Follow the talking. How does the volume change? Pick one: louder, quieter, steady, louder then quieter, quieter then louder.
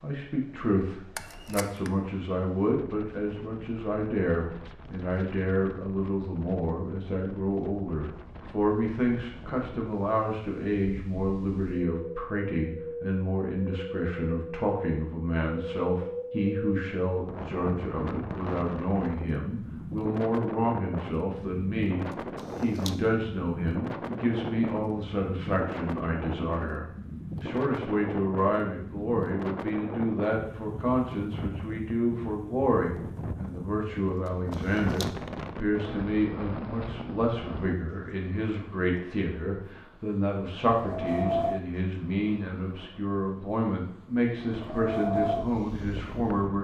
steady.